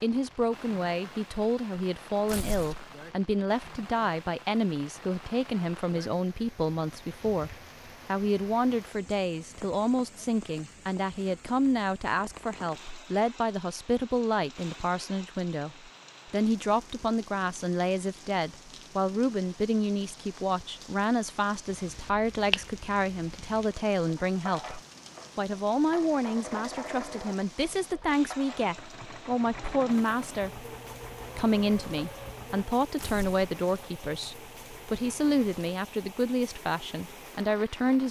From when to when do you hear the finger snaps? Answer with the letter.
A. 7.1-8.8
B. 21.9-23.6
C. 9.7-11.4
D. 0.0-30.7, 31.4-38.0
B.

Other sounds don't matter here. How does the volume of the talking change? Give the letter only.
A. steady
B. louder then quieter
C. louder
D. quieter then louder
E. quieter
A.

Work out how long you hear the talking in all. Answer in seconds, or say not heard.
37 s.